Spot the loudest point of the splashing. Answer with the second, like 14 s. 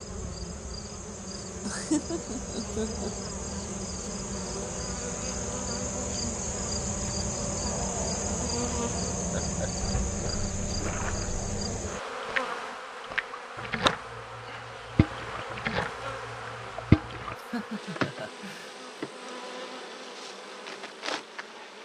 17 s.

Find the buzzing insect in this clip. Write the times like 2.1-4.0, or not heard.
0.0-21.8.